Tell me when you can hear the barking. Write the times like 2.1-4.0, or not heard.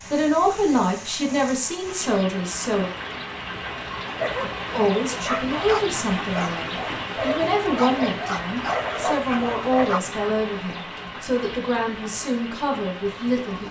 4.0-10.0.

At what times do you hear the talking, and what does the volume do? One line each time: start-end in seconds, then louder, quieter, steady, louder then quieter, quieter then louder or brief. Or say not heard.
0.1-2.9 brief
4.8-13.6 steady.